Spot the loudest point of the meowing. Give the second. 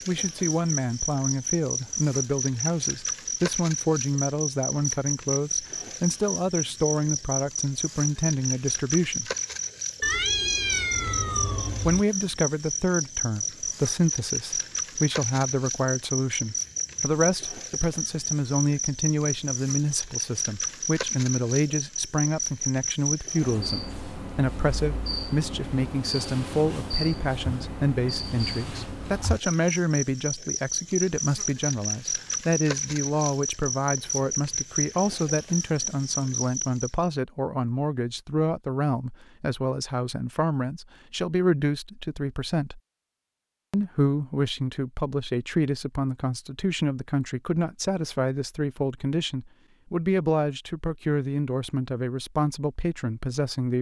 10 s.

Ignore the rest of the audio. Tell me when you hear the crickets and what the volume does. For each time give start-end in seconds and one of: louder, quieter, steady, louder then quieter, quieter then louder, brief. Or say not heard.
0.0-37.1 steady.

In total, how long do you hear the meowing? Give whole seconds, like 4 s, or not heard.
2 s.